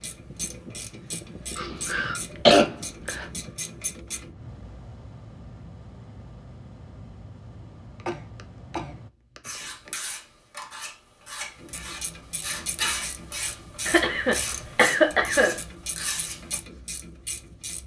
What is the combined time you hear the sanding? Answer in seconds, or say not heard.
7 s.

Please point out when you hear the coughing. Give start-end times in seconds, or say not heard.
1.6-3.2, 8.0-9.9, 13.8-15.6.